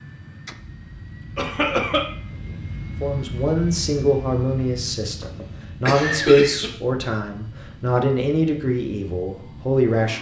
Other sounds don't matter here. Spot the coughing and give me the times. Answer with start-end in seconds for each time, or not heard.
1.4-2.0, 5.2-6.7.